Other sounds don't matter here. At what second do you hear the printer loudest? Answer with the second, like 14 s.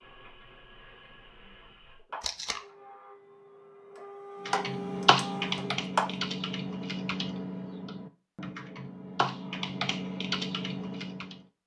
6 s.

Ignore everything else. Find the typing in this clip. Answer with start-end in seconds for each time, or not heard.
4.5-11.4.